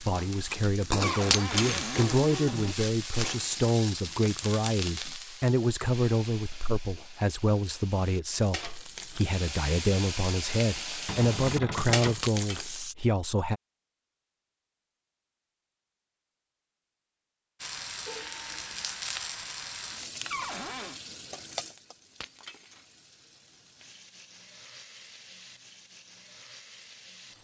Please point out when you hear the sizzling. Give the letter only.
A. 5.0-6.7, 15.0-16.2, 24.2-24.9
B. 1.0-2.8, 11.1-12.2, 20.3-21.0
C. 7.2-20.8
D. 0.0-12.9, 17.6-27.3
D.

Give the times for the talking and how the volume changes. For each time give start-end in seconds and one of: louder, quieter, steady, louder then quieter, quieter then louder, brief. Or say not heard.
0.0-13.6 steady.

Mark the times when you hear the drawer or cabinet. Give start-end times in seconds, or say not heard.
1.0-2.8, 11.1-12.2, 20.3-21.0.